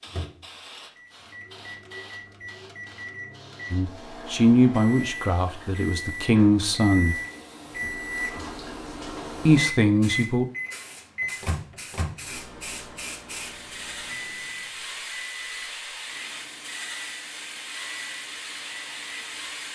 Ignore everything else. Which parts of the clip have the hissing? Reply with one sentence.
The hissing can be heard from 0.0 to 19.7 s.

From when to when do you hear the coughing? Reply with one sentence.
The coughing can't be heard in this clip.